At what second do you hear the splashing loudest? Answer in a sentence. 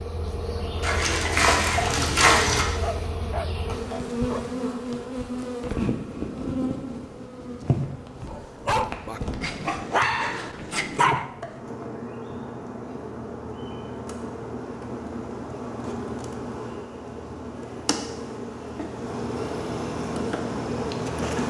The loudest moment of the splashing is at 2 seconds.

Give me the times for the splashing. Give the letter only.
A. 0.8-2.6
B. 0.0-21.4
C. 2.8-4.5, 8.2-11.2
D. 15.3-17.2
A.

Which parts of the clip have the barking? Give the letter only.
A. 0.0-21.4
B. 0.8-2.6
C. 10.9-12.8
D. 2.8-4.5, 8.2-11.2
D.